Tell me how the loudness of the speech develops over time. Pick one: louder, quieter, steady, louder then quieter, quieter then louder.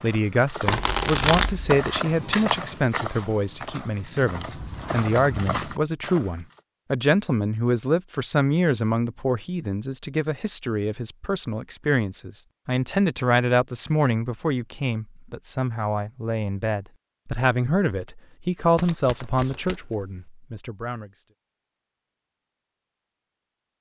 steady.